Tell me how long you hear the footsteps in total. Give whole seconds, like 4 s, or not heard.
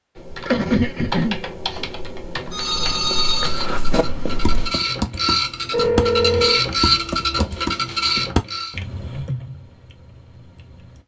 2 s.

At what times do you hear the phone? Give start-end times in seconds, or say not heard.
2.5-4.0, 5.7-6.7.